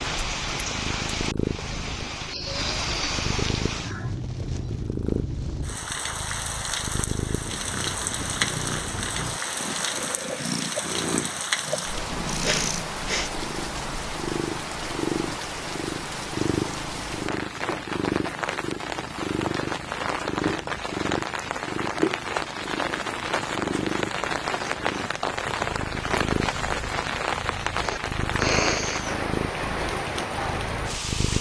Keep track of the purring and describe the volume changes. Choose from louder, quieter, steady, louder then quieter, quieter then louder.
steady.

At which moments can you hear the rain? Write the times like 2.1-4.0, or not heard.
0.0-31.3.